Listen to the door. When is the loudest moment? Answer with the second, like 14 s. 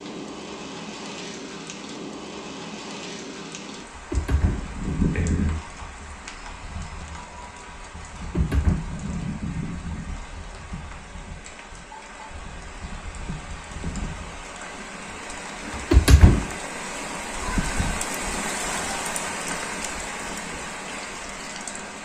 16 s.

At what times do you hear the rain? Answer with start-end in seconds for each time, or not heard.
0.0-22.0.